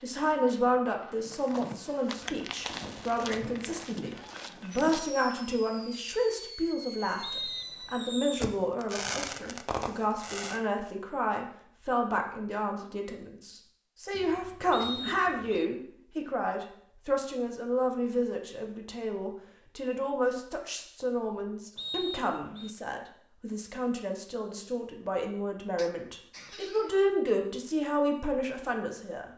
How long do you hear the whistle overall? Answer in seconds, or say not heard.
3 s.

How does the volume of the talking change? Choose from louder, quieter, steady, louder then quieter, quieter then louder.
steady.